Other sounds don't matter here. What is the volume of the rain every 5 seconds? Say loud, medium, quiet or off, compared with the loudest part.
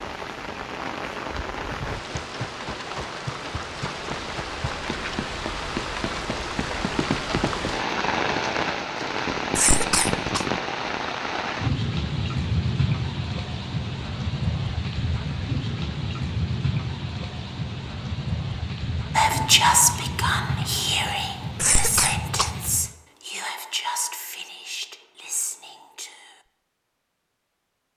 medium, loud, loud, loud, medium, off.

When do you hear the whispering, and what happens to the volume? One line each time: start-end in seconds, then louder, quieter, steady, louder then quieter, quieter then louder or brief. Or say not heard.
19.1-26.4 quieter.